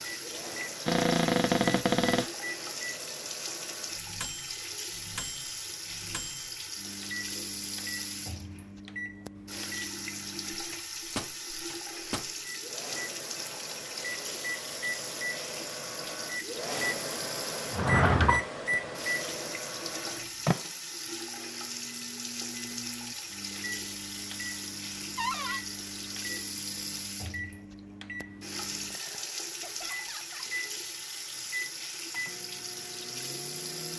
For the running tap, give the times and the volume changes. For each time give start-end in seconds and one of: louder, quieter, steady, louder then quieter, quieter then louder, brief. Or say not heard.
0.0-33.9 steady.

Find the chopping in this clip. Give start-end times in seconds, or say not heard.
not heard.